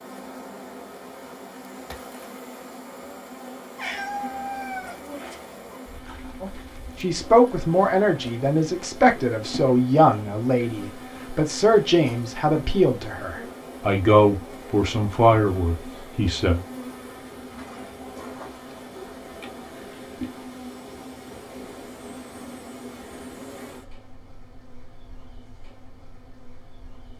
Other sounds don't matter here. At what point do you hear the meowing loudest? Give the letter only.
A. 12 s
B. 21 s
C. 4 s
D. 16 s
C.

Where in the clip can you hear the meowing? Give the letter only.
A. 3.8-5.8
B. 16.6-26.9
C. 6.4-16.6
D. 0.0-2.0
A.